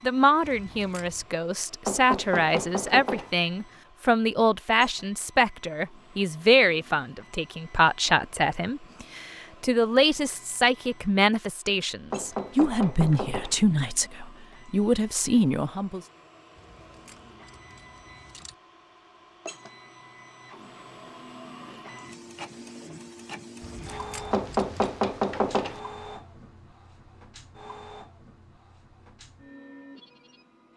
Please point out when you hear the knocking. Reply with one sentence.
You can hear the knocking from 1.9 to 3.4 s, from 12.1 to 13.6 s and from 24.3 to 25.8 s.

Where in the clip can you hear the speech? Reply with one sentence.
The speech can be heard from 0.0 to 16.0 s.